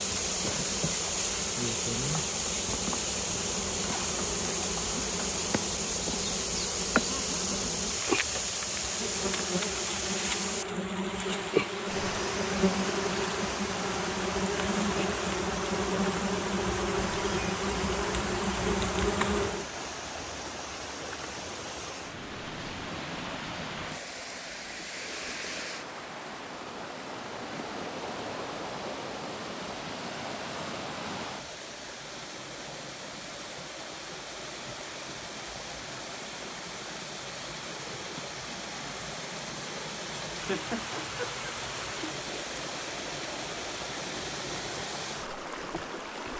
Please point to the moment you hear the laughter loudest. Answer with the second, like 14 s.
41 s.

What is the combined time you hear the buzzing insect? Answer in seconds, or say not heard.
20 s.